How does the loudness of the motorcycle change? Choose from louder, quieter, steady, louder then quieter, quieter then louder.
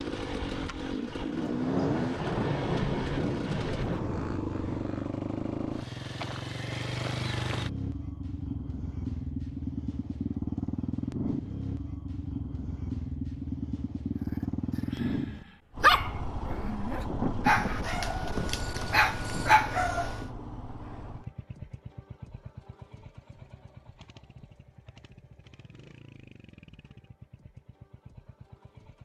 quieter.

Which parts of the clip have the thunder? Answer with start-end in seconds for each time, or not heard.
0.5-4.4, 16.9-20.5.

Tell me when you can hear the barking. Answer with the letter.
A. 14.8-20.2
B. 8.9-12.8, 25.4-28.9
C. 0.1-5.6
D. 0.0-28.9
A.